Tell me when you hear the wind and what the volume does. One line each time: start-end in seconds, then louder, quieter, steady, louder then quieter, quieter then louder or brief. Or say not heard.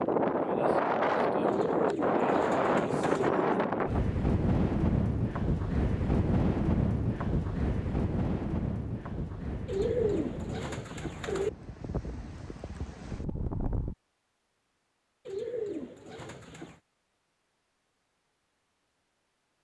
0.0-13.9 quieter.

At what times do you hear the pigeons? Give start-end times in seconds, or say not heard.
1.4-3.3, 9.7-11.5, 15.2-16.8.